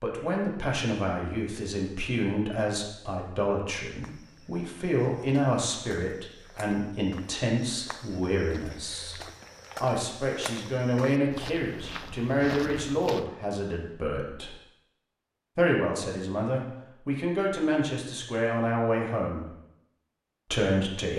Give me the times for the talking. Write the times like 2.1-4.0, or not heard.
0.0-9.2, 9.8-14.6, 15.6-19.4, 20.5-21.1.